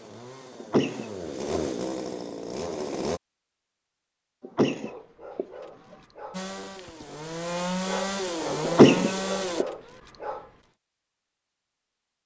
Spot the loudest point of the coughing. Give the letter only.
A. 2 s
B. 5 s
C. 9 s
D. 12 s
C.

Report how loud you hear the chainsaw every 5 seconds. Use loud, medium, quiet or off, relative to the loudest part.
loud, loud, off.